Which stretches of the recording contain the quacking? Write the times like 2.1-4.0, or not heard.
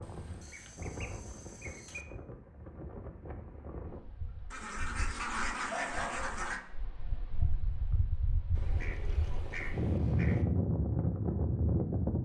0.0-2.0, 4.5-6.6, 8.6-10.4.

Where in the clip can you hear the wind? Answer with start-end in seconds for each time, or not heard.
0.0-12.2.